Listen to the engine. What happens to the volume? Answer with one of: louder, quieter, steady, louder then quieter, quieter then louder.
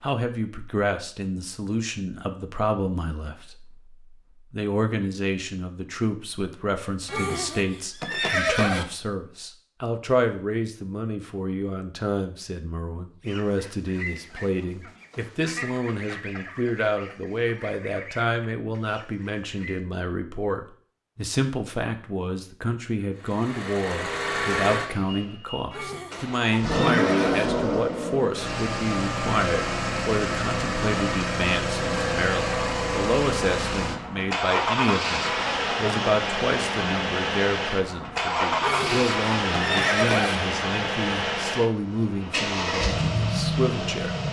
steady.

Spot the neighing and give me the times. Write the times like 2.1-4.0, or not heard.
7.0-8.8, 25.7-27.5, 38.6-40.4.